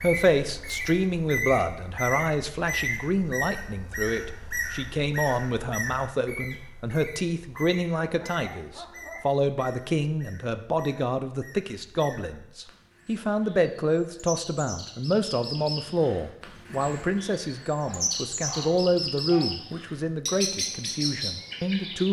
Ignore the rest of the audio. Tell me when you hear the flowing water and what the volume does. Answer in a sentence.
The flowing water can't be heard in this clip.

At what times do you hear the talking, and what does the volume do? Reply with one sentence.
You can hear the talking from 0.0 to 22.0 s, at a steady volume.